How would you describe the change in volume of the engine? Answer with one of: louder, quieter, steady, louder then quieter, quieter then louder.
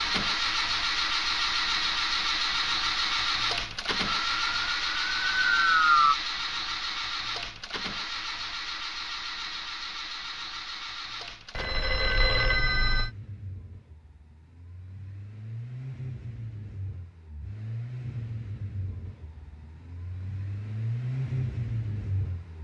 quieter then louder.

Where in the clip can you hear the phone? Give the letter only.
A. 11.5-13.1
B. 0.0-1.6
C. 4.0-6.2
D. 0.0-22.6
A.